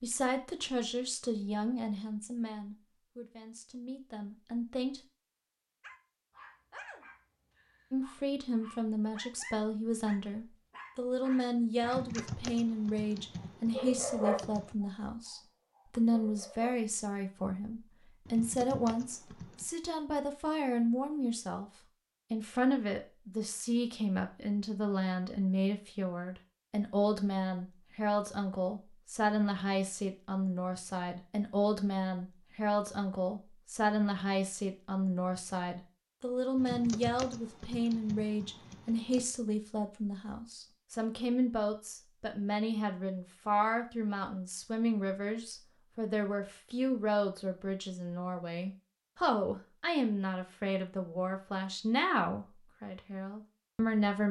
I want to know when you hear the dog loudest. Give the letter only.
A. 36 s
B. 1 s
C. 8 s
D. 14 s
D.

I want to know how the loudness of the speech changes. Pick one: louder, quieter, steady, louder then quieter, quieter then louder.
steady.